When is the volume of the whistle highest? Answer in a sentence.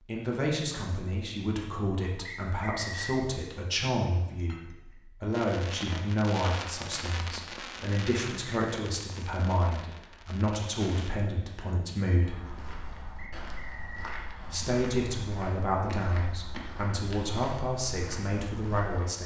The loudest moment of the whistle is at 3 seconds.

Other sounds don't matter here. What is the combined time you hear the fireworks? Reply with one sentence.
You can hear the fireworks for 6 seconds altogether.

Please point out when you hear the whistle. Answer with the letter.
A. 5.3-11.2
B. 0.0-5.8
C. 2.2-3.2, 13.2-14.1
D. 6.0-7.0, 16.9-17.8
C.